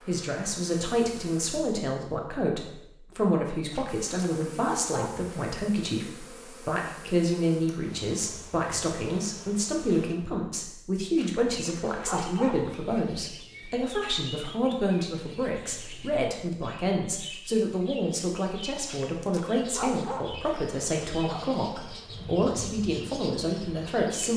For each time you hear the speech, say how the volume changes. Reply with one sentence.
You can hear the speech from 0.1 to 24.3 s, at a steady volume.